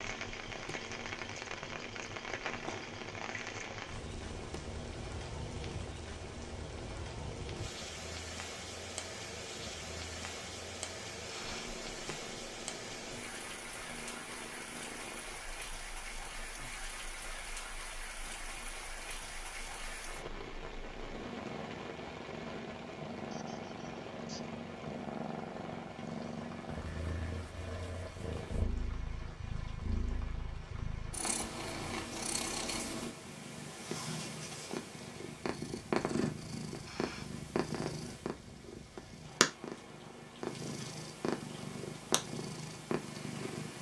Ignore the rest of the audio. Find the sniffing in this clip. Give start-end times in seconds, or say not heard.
11.2-11.8, 23.3-24.5, 36.8-37.4.